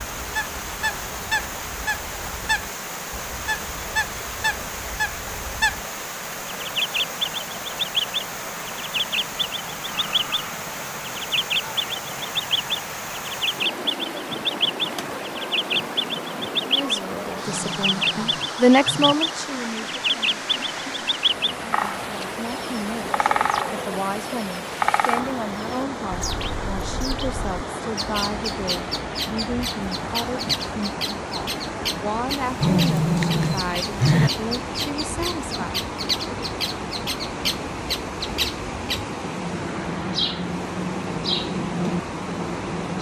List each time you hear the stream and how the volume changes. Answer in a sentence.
The stream can be heard from 0.0 to 42.9 s, at a steady volume.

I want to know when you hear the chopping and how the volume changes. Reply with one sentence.
You can't hear the chopping here.